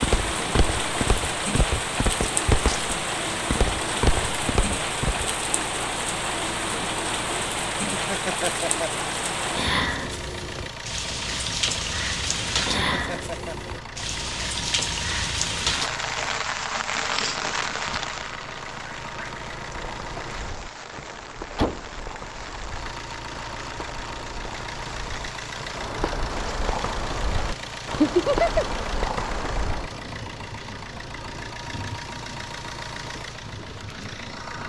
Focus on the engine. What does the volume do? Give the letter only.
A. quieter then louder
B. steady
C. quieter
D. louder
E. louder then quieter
B.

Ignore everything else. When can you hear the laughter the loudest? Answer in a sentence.
The loudest moment of the laughter is at 28 seconds.